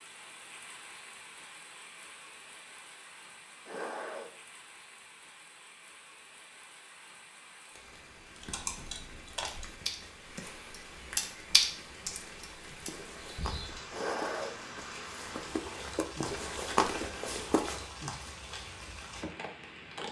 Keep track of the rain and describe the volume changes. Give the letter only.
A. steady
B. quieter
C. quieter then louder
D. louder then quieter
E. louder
E.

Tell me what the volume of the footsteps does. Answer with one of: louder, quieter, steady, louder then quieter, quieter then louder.
quieter then louder.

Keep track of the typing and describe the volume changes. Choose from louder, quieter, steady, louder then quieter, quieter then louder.
louder then quieter.